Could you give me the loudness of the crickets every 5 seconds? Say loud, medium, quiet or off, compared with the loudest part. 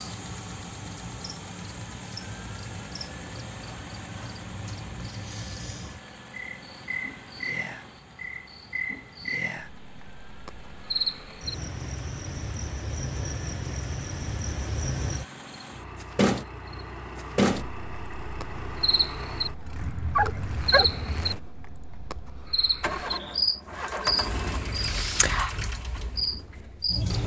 quiet, medium, medium, loud, loud, loud.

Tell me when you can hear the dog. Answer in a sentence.
You can hear the dog from 19.8 to 21.2 s.